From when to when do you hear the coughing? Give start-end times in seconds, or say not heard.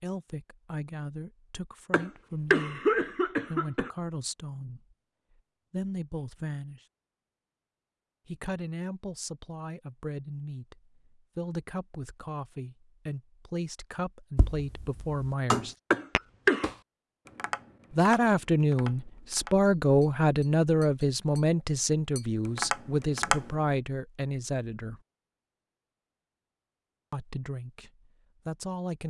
1.9-3.9, 15.9-16.7.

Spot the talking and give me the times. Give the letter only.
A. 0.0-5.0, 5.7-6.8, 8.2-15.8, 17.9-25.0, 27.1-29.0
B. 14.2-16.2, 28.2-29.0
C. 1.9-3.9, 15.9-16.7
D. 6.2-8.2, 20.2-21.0
A.